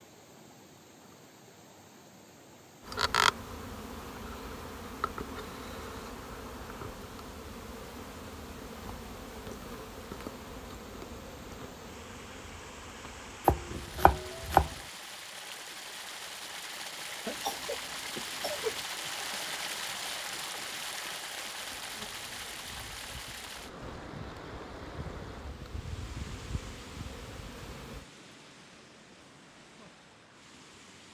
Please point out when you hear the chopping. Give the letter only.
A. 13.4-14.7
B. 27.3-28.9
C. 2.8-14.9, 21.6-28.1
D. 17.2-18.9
A.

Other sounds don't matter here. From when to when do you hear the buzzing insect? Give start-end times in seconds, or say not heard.
2.8-14.9, 21.6-28.1.